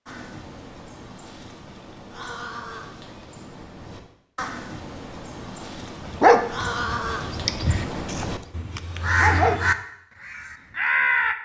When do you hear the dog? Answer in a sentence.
The dog can be heard from 6.2 to 9.6 s.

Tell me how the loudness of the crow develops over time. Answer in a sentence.
The volume of the crow goes up.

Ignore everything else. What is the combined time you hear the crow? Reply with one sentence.
The crow can be heard for 11 seconds in total.